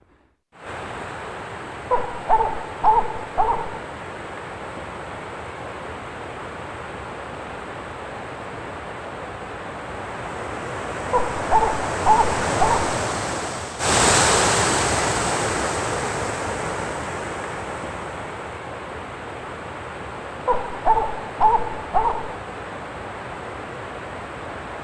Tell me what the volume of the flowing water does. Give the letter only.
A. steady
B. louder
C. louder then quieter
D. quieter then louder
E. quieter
C.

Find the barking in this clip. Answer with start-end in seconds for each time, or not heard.
1.9-3.8, 11.1-12.8, 20.4-22.4.